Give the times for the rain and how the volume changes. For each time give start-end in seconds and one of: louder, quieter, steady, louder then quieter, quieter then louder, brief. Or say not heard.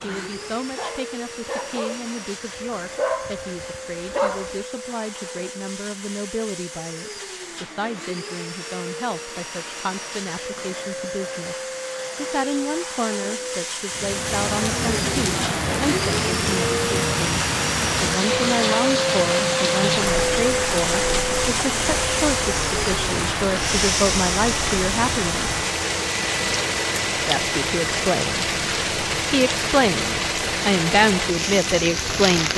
13.9-32.5 steady.